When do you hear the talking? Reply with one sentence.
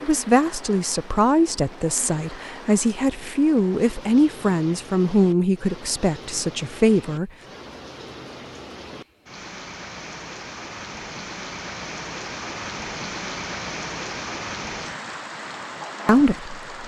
The talking can be heard from 0.0 to 7.3 s and from 16.1 to 16.8 s.